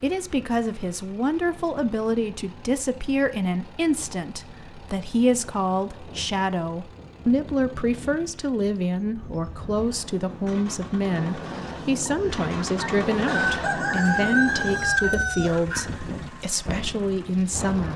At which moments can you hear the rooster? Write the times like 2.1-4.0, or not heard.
12.1-15.8.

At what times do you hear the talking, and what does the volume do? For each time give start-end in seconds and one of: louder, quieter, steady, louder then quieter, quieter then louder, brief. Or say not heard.
0.0-17.9 steady.